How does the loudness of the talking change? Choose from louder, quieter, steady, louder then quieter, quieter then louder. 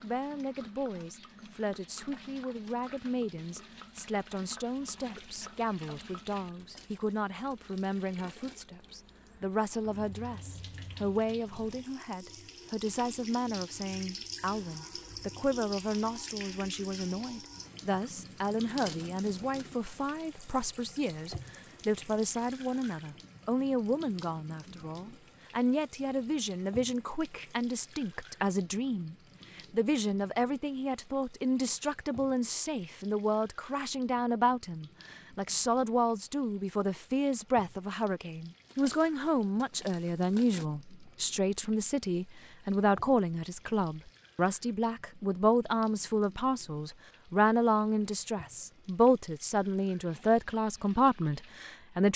louder.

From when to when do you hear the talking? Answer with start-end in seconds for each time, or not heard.
0.0-52.1.